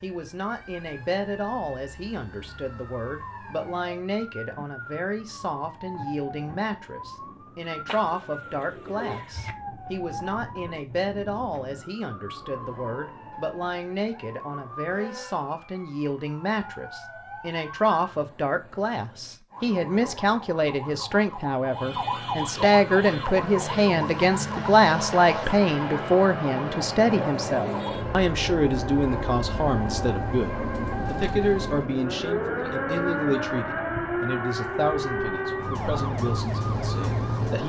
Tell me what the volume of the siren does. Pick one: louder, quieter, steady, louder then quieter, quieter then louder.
louder.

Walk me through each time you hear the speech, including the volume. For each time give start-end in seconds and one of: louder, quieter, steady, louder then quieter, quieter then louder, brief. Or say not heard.
0.0-37.6 louder then quieter.